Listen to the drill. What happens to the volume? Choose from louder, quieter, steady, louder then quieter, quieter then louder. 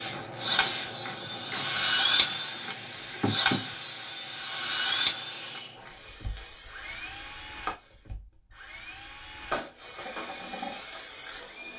quieter.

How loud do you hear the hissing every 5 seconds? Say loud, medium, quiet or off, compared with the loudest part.
loud, medium, loud.